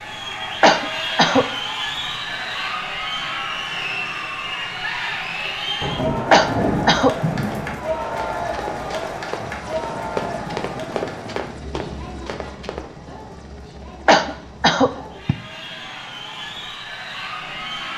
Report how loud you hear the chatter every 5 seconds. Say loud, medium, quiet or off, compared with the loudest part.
loud, loud, medium, medium.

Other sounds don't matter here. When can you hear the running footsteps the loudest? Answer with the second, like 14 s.
10 s.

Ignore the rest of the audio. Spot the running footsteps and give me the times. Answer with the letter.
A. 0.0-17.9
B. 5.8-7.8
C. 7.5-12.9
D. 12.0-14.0
C.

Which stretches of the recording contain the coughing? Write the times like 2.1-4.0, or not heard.
0.6-1.4, 6.3-7.2, 14.1-15.3.